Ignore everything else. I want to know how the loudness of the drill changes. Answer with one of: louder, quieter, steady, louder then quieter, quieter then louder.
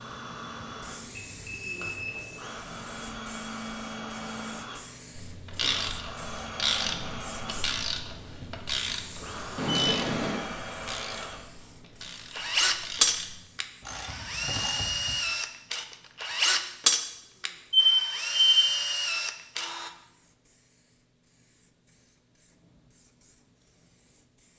louder.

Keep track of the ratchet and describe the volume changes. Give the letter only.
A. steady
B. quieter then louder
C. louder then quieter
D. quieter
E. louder
B.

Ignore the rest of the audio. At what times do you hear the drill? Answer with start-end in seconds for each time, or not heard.
0.0-19.9.